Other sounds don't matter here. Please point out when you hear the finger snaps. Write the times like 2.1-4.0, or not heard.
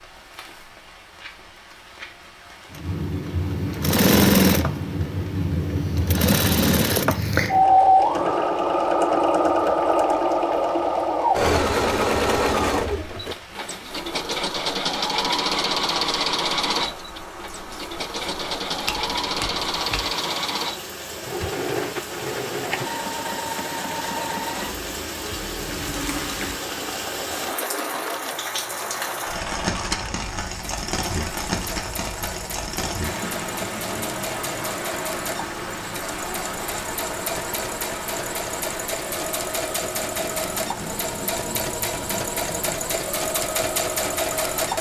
18.9-20.1.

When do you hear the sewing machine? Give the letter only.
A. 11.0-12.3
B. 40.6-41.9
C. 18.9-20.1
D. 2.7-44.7
D.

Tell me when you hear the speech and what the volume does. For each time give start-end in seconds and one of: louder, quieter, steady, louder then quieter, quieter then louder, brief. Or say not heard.
not heard.